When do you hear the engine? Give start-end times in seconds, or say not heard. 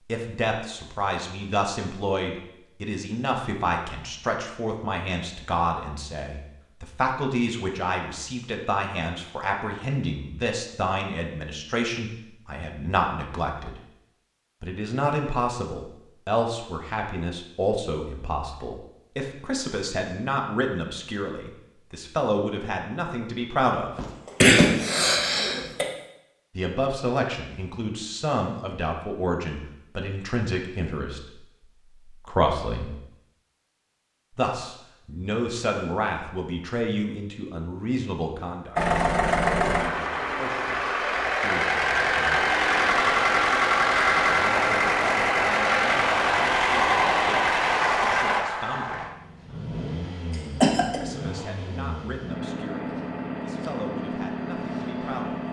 38.8-55.4.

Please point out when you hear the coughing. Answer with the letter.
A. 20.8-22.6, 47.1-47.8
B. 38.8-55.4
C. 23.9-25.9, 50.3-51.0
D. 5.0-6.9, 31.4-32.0
C.